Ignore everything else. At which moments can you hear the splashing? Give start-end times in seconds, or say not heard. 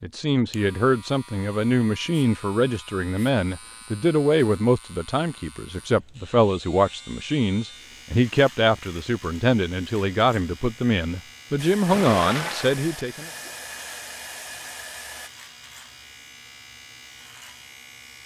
11.8-13.7.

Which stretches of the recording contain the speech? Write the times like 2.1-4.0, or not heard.
0.0-13.3.